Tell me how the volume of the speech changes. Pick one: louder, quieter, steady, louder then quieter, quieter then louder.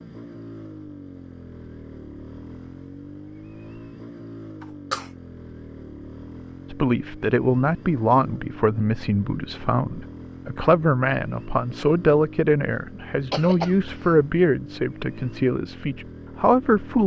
steady.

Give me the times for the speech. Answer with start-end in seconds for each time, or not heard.
6.7-17.0.